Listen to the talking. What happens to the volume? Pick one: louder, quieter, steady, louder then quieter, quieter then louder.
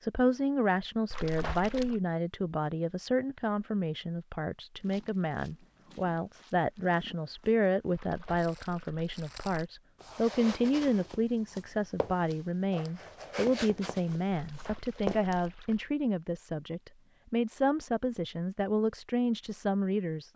steady.